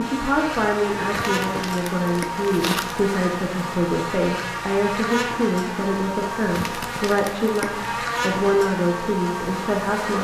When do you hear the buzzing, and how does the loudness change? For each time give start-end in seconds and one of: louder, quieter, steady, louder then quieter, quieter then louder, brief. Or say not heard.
0.0-10.1 steady.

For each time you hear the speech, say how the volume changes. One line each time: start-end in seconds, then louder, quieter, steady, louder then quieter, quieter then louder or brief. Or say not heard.
0.0-10.1 steady.